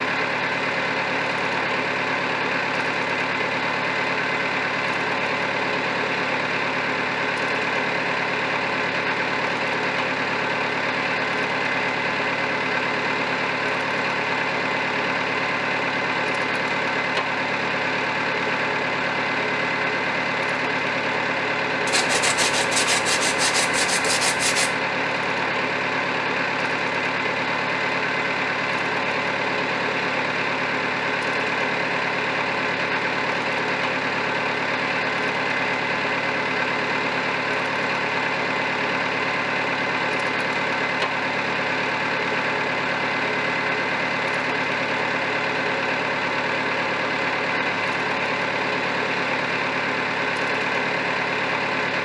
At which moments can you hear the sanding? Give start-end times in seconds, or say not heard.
21.9-24.7.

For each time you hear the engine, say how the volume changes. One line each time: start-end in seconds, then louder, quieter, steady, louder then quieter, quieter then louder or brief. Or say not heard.
0.0-52.0 steady.